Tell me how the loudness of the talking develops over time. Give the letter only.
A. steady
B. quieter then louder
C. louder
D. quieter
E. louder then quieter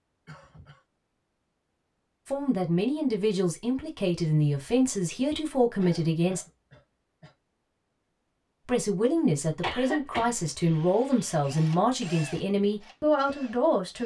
A.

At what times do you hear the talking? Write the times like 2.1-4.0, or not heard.
2.2-6.5, 8.7-14.0.